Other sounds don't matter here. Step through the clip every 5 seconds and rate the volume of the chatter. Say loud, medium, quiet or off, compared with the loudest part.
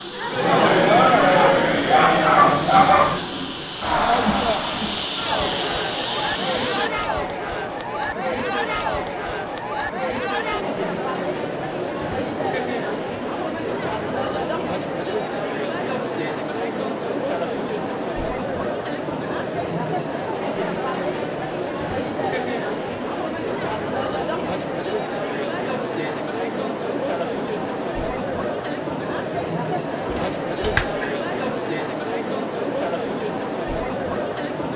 loud, medium, medium, medium, medium, medium, medium.